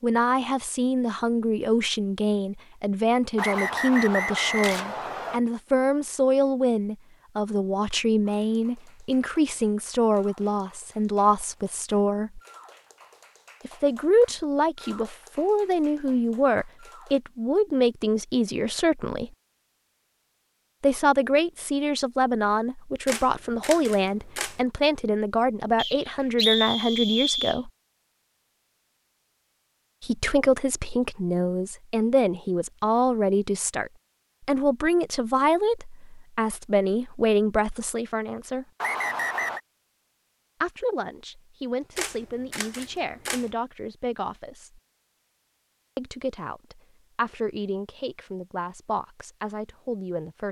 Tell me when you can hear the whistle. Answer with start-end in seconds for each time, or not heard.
3.4-5.4, 25.8-27.6, 38.8-39.6.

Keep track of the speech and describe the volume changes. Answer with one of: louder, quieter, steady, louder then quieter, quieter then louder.
quieter.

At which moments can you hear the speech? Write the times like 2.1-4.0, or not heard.
0.0-12.4, 13.7-19.3, 20.8-27.7, 30.0-38.7, 40.6-44.8, 46.0-50.4.